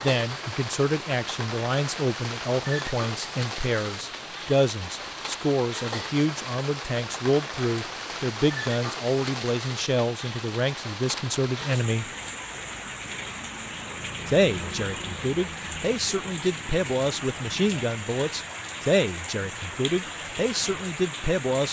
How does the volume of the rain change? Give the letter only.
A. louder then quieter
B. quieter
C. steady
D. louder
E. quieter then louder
C.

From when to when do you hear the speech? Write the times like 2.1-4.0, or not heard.
0.0-12.1, 14.2-21.6.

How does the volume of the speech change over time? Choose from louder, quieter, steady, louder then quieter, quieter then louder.
steady.